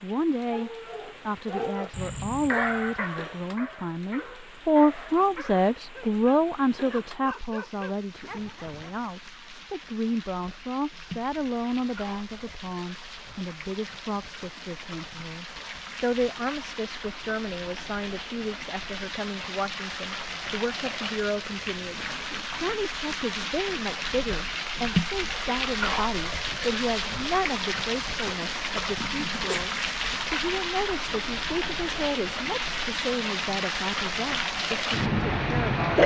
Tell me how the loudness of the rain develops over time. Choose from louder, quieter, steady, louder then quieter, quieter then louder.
louder.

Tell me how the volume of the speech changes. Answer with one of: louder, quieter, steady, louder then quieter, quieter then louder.
quieter.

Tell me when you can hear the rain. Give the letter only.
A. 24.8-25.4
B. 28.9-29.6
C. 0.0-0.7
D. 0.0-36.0
D.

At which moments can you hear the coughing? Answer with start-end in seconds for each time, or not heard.
28.9-29.6.